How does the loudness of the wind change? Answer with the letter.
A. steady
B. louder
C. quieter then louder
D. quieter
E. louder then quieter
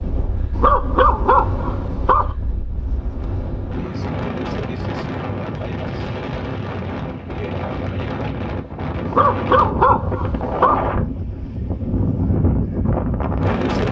B.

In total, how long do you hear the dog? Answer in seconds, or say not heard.
4 s.